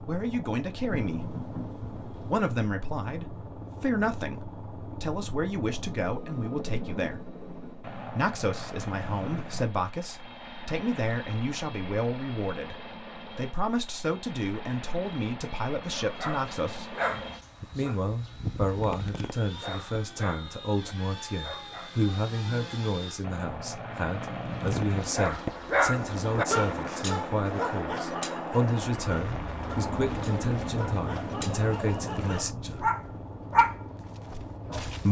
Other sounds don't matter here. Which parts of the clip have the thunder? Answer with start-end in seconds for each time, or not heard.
0.9-2.4, 29.1-32.5.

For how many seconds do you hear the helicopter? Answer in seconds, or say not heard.
35 s.